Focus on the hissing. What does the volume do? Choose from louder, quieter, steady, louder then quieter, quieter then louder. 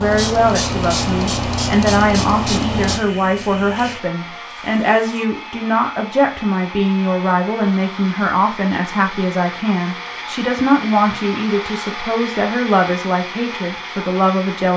quieter.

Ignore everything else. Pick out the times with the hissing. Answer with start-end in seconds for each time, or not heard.
0.0-5.2.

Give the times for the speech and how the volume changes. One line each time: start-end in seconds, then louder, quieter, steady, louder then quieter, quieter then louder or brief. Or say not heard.
0.0-14.7 steady.